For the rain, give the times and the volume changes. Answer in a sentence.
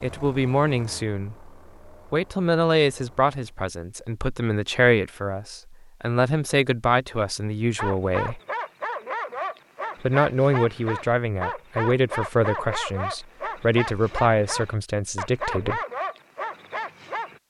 The rain can't be heard in this clip.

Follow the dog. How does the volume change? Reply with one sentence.
The loudness of the dog stays about the same.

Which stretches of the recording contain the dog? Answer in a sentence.
You can hear the dog from 7.8 to 17.4 s.